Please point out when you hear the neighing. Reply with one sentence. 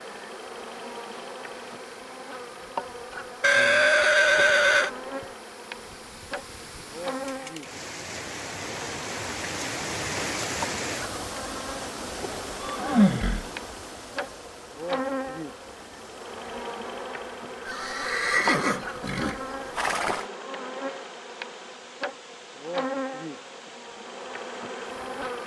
The neighing can be heard from 3.4 to 4.9 s, from 12.6 to 13.5 s and from 17.6 to 20.2 s.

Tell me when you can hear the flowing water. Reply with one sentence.
You can hear the flowing water from 0.0 to 25.4 s.